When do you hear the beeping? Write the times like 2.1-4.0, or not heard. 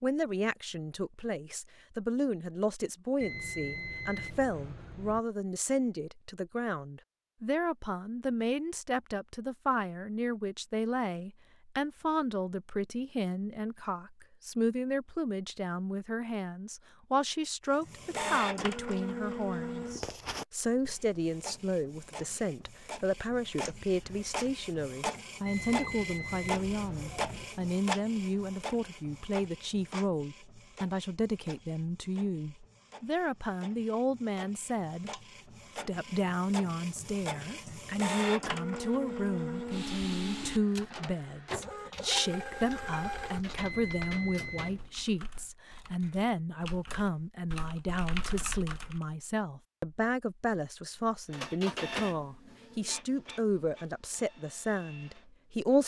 3.2-5.2, 25.4-27.4, 43.5-44.9.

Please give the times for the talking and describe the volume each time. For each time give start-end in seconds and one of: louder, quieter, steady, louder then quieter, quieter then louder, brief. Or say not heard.
0.0-55.8 steady.